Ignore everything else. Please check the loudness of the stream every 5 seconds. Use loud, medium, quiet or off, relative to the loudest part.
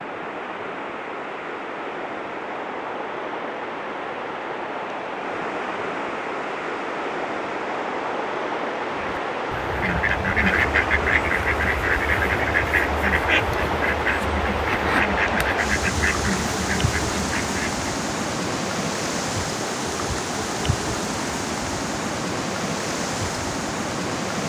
medium, loud, loud, loud, loud.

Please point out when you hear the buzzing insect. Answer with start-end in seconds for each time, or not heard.
not heard.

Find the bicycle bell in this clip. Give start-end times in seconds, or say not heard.
not heard.